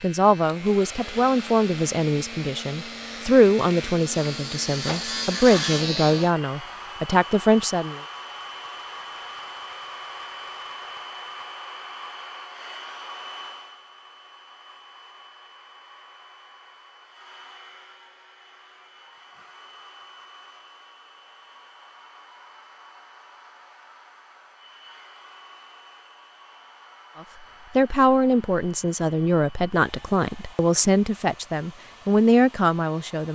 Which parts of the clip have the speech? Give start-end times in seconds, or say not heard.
0.0-8.0, 27.8-33.3.